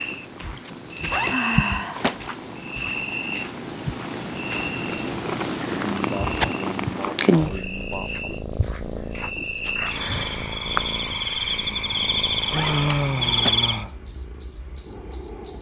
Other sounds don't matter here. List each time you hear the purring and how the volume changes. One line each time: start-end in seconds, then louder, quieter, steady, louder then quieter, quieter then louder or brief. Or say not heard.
0.0-15.5 louder then quieter.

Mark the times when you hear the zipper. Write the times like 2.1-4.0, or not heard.
1.1-2.2, 12.5-13.7.